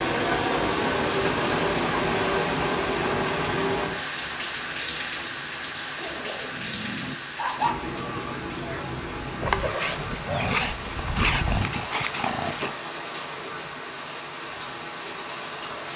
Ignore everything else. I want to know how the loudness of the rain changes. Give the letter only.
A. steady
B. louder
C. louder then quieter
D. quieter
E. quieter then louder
D.